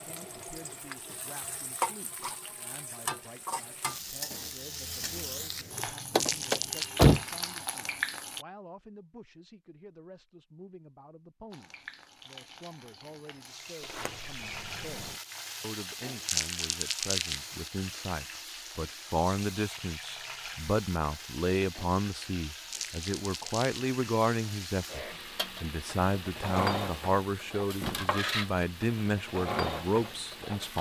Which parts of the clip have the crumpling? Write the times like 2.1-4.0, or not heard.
6.2-6.9, 16.2-17.4, 22.7-23.9.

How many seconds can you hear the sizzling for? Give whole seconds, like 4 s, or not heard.
28 s.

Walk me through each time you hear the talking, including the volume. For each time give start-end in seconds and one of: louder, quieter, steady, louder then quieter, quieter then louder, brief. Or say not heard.
0.0-30.7 louder.